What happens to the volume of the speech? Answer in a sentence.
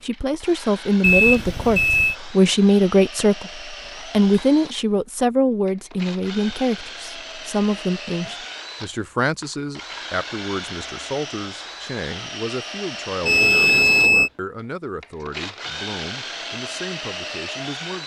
The loudness of the speech goes down.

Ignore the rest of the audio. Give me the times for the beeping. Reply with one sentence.
You can hear the beeping from 1.0 to 2.1 s and from 13.2 to 14.3 s.